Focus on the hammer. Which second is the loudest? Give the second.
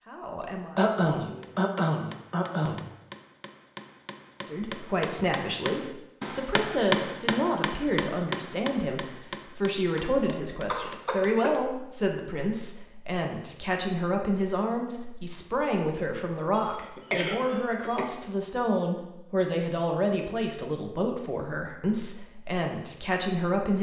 7 s.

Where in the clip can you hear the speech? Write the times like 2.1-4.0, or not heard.
0.0-1.6, 4.4-23.7.